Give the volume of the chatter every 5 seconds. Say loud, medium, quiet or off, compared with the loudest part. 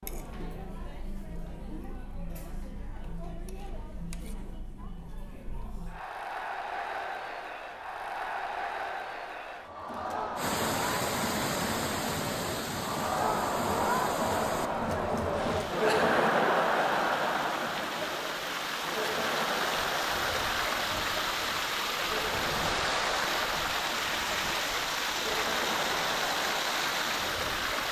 quiet, medium, loud, loud, medium, medium.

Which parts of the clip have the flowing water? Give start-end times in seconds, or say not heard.
10.3-27.8.